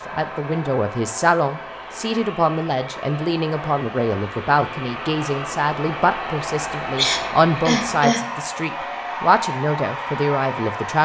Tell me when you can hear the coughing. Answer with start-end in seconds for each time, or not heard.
7.0-8.3.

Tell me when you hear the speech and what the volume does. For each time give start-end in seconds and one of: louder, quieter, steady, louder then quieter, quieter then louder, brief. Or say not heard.
0.1-10.9 steady.